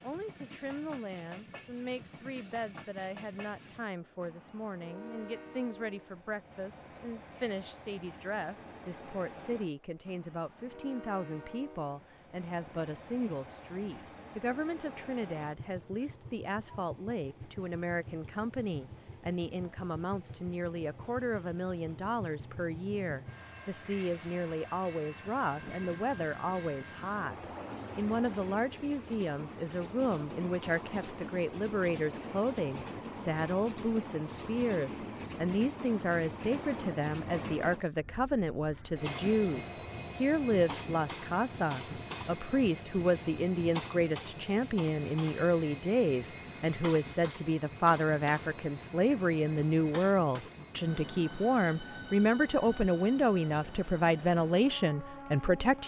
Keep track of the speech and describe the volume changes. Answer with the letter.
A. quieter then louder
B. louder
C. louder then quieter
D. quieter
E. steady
B.